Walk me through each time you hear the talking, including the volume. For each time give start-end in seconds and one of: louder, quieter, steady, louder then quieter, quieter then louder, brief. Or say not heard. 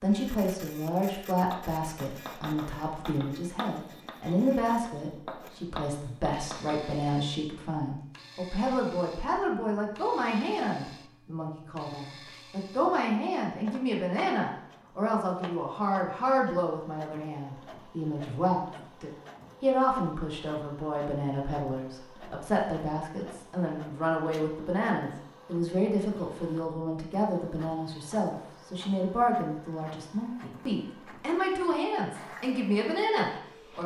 0.0-33.8 steady.